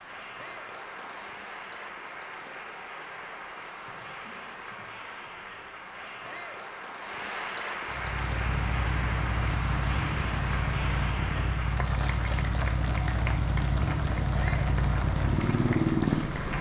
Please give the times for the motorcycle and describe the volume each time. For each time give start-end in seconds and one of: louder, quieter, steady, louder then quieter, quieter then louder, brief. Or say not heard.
7.8-16.5 louder.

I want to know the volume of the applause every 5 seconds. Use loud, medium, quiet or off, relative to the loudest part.
medium, loud, loud, loud.